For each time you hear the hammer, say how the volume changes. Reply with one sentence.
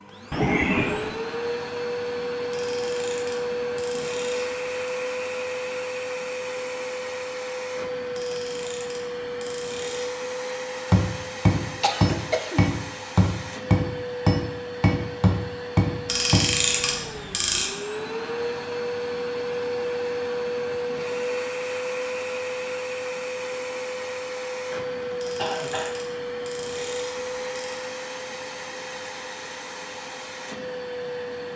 The hammer can be heard from 10.9 to 16.6 s, at a steady volume.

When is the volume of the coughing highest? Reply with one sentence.
The volume of the coughing peaks at 1 second.